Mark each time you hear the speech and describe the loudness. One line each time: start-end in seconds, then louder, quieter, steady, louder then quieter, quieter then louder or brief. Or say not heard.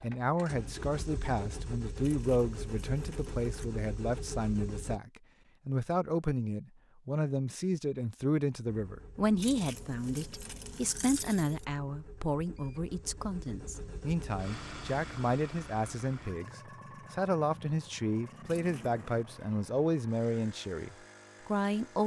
0.0-22.0 steady.